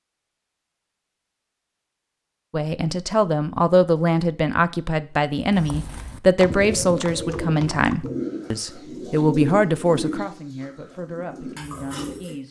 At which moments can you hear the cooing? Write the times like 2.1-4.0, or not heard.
6.5-12.3.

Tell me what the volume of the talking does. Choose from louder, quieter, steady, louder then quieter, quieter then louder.
quieter.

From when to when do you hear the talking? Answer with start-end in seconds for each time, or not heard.
2.5-12.4.